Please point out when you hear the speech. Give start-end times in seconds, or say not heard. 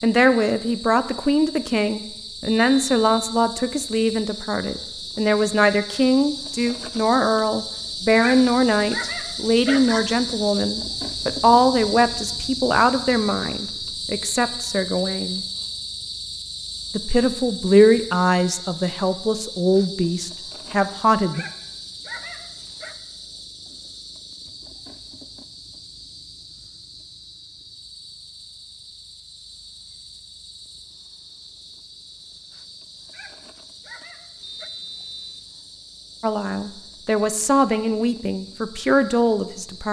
0.0-15.4, 16.9-21.4, 36.2-39.8.